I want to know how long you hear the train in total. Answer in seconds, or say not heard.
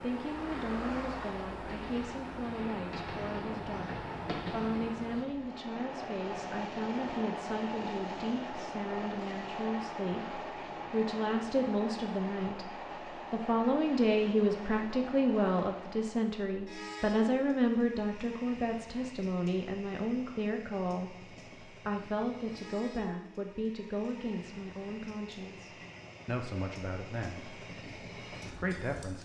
29 s.